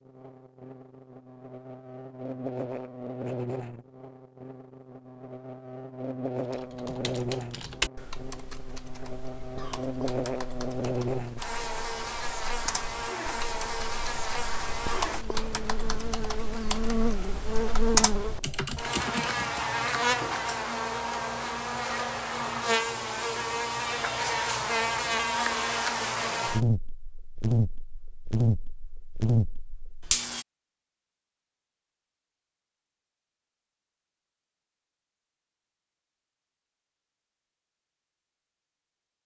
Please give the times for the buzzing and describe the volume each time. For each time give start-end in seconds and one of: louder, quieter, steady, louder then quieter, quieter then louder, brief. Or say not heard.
0.0-30.4 louder.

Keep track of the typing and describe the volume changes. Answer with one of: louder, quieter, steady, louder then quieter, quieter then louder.
quieter then louder.